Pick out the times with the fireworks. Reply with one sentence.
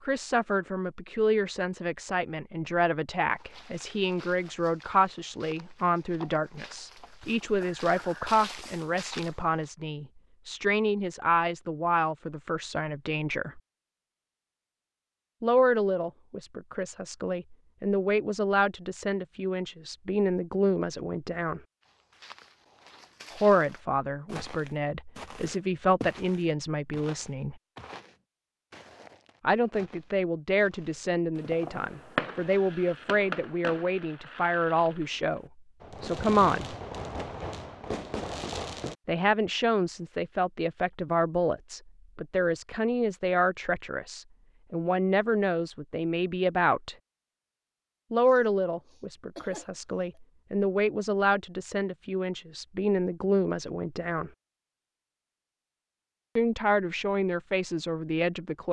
You can hear the fireworks from 31.4 to 39.0 s.